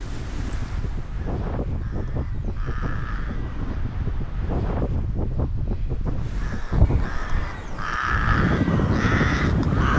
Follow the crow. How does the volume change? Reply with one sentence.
The volume of the crow goes up.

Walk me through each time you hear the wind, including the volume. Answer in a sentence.
You can hear the wind from 0.0 to 9.9 s, getting louder.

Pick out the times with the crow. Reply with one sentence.
You can hear the crow from 0.0 to 3.8 s and from 6.2 to 9.9 s.